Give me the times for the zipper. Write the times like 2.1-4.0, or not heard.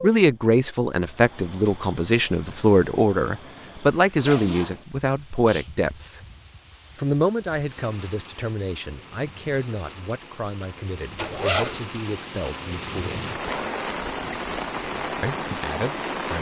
4.2-4.8, 11.2-11.8.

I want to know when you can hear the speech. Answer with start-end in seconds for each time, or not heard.
0.0-6.2, 7.0-13.3, 15.2-16.3.